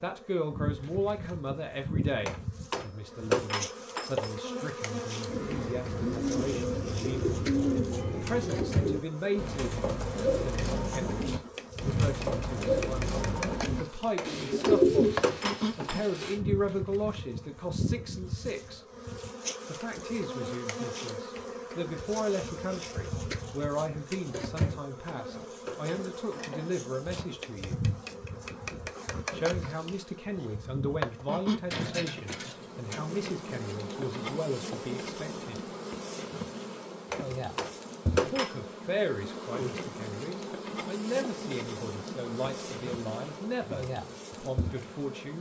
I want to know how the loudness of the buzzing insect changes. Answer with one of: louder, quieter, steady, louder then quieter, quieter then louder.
steady.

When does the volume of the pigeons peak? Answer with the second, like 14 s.
15 s.